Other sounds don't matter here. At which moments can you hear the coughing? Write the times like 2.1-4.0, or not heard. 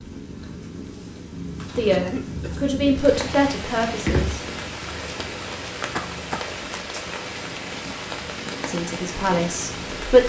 1.9-2.7, 6.0-6.5.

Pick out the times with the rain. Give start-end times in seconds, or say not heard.
2.9-10.2.